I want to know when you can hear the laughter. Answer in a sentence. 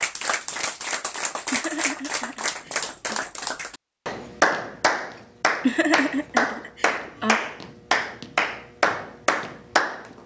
You can hear the laughter from 1.5 to 3.2 s and from 5.6 to 7.4 s.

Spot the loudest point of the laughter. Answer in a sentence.
The volume of the laughter peaks at 6 seconds.